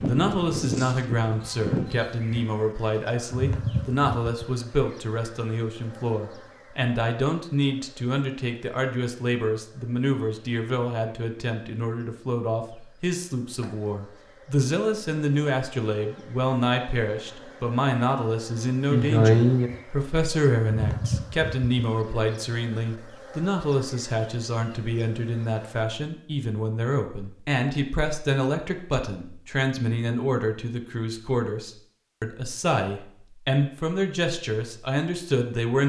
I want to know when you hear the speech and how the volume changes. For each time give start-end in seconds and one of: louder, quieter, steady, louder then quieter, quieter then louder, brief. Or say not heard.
0.0-35.8 steady.